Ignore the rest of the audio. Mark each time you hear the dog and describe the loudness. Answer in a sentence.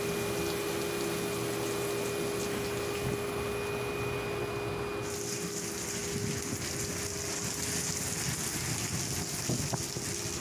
You can't hear the dog here.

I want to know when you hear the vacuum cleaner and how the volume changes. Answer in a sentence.
You can hear the vacuum cleaner from 0.0 to 10.3 s, getting quieter.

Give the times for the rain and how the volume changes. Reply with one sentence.
The rain can be heard from 0.0 to 10.3 s, getting louder.